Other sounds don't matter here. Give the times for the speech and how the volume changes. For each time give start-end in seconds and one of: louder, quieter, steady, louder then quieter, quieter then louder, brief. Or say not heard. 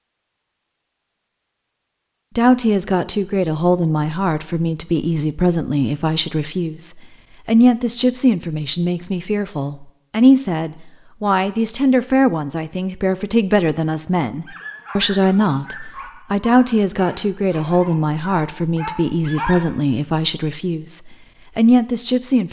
2.4-22.4 steady.